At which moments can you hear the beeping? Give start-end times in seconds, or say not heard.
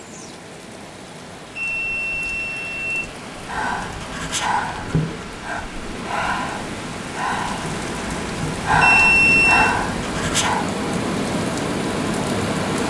1.6-3.0, 8.8-9.8.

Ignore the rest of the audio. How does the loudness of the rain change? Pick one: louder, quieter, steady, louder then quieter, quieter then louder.
louder.